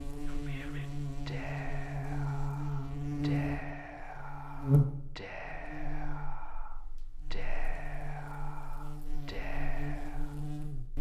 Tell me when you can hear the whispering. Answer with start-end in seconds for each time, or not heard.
0.2-10.4.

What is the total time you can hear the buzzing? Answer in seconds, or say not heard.
11 s.